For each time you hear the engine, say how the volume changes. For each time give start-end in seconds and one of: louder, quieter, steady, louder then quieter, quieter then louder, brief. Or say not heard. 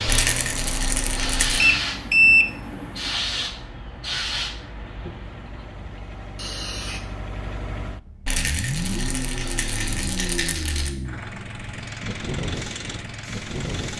0.0-13.9 quieter then louder.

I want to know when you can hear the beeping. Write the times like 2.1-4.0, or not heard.
1.6-3.1.